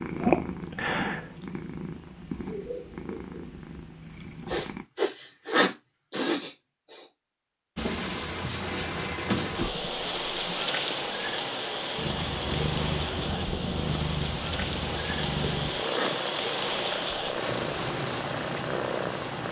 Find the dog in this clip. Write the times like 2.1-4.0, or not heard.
not heard.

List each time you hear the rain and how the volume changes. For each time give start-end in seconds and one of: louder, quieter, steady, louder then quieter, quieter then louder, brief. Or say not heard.
7.8-19.4 steady.